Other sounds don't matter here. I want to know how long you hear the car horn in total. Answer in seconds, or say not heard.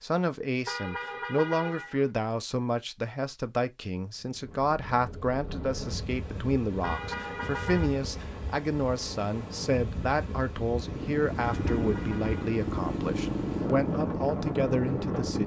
4 s.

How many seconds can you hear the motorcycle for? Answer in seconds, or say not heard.
5 s.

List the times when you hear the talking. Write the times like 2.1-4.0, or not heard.
0.0-15.4.